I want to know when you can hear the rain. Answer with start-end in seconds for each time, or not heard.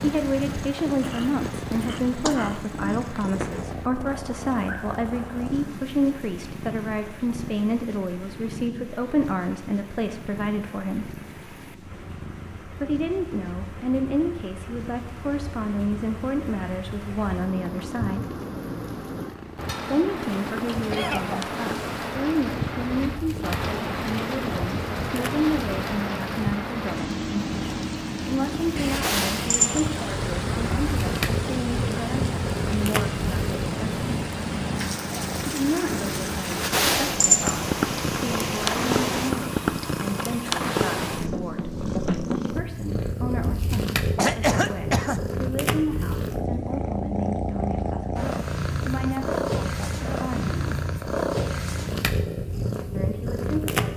0.0-39.3.